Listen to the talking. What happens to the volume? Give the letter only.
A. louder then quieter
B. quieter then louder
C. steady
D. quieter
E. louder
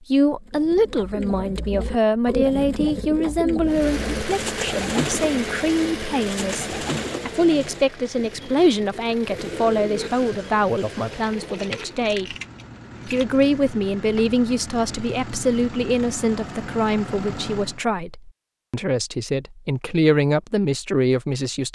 C.